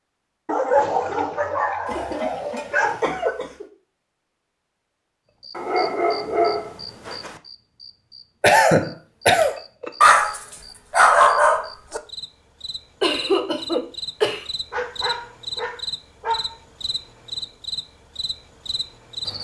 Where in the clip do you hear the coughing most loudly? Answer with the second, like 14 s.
9 s.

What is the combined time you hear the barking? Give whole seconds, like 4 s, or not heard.
8 s.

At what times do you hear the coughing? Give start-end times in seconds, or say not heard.
1.9-3.6, 8.4-9.6, 13.0-14.4.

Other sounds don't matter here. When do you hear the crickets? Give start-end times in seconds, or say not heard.
5.4-19.3.